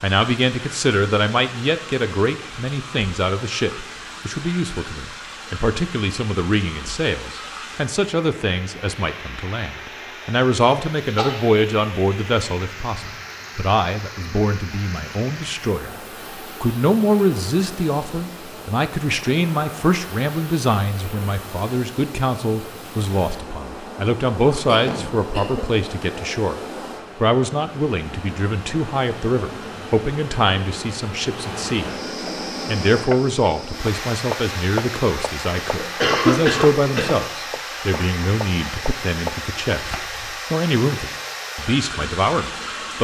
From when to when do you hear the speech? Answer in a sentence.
You can hear the speech from 0.0 to 26.6 s, from 27.1 to 31.9 s and from 32.6 to 42.9 s.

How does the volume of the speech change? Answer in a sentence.
The volume of the speech stays about the same.